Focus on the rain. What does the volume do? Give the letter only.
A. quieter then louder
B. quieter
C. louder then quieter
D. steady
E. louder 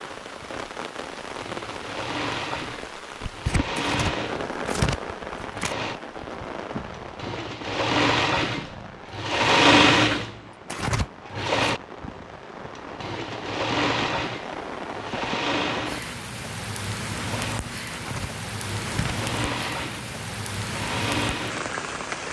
A.